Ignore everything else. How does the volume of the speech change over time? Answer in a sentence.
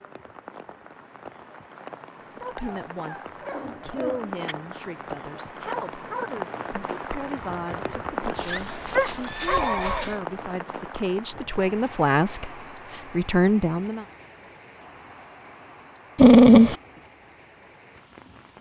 The loudness of the speech goes up.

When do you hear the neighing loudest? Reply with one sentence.
The loudest moment of the neighing is at 10 seconds.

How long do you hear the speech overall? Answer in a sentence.
You can hear the speech for 12 seconds altogether.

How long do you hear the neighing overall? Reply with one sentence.
The neighing can be heard for 2 seconds in total.